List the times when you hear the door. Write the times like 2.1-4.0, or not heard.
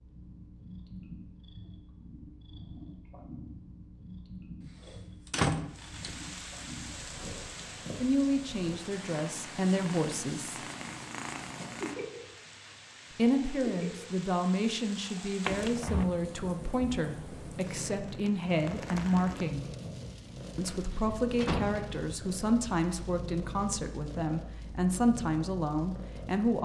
4.6-6.1, 15.4-16.1, 20.6-22.0.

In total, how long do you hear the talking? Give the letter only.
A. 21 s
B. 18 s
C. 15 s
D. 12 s
C.